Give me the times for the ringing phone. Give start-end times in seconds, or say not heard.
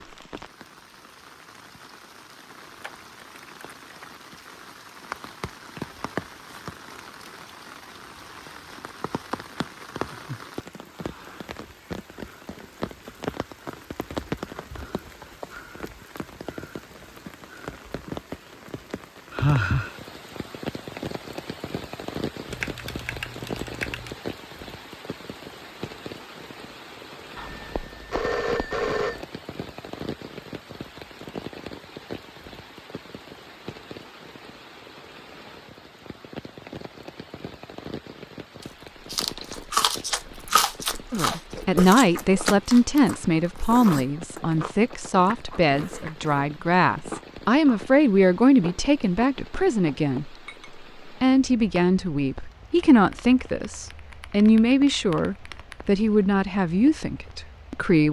27.4-29.2.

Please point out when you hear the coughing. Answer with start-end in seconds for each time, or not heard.
not heard.